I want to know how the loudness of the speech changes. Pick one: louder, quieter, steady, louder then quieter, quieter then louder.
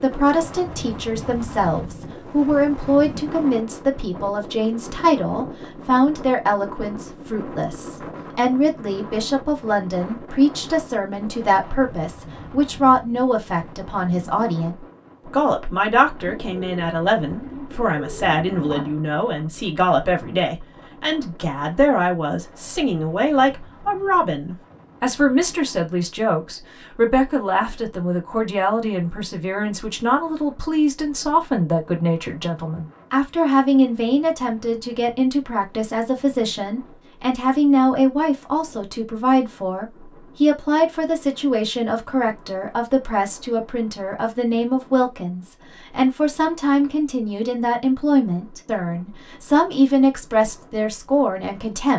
steady.